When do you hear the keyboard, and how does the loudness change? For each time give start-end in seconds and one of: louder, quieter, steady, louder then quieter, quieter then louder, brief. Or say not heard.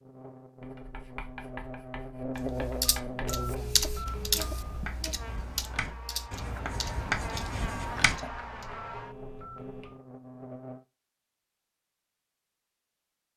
2.4-8.4 quieter.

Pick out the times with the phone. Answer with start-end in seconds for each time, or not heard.
2.9-4.9, 8.2-10.0.